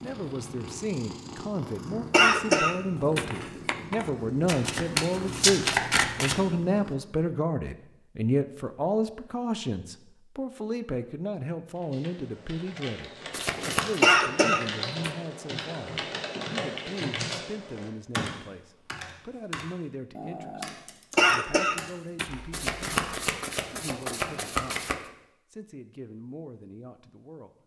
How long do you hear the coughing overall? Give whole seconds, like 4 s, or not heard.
4 s.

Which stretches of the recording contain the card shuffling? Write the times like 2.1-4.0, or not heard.
4.5-6.5, 13.3-14.1, 22.5-25.0.